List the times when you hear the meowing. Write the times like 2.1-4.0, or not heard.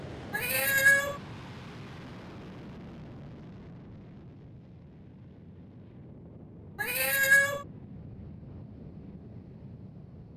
0.3-1.2, 6.8-7.7.